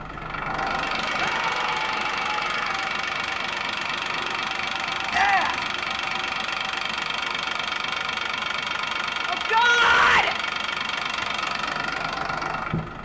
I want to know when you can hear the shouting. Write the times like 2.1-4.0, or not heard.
1.1-2.8, 5.1-5.7, 9.2-10.3.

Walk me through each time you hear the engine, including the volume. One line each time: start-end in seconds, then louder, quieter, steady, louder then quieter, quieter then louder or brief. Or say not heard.
0.0-12.9 steady.